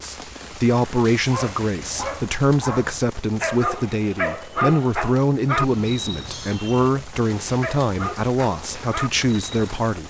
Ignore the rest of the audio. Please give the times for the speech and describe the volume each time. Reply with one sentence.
The speech can be heard from 0.0 to 10.0 s, at a steady volume.